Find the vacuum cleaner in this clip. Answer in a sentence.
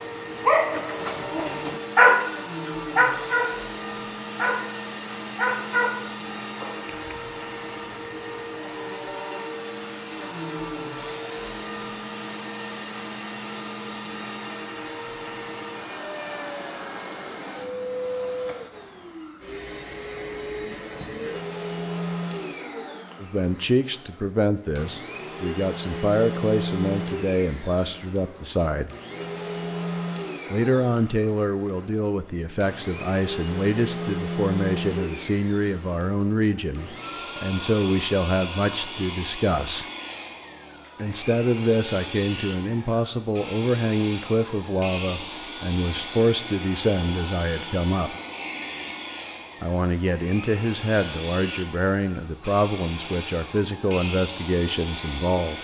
You can hear the vacuum cleaner from 0.0 to 55.5 s.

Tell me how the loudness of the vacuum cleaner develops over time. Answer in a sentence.
The loudness of the vacuum cleaner stays about the same.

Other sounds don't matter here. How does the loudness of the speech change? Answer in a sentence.
The loudness of the speech stays about the same.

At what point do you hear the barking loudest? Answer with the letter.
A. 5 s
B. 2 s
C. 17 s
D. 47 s
B.